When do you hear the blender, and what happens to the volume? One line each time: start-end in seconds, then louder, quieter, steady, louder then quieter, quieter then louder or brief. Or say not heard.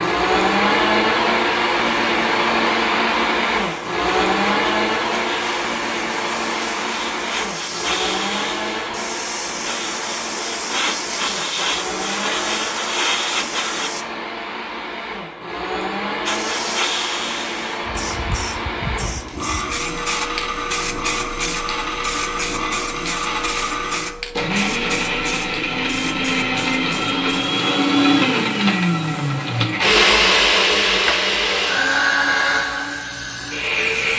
0.0-34.1 quieter then louder.